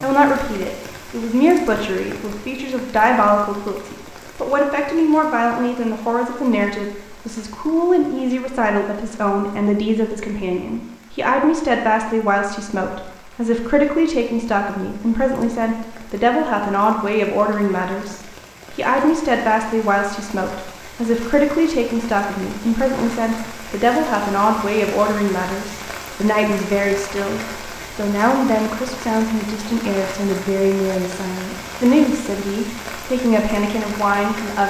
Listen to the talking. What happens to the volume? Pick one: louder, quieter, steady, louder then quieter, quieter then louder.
steady.